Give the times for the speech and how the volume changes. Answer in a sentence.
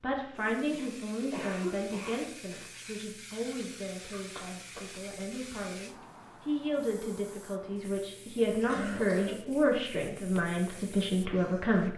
The speech can be heard from 0.0 to 11.9 s, getting quieter then louder.